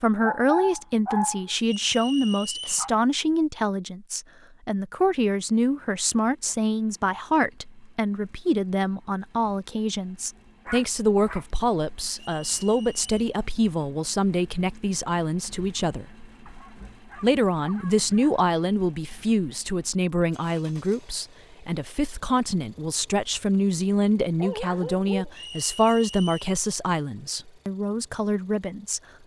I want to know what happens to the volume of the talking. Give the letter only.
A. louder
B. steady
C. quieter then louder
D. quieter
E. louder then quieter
B.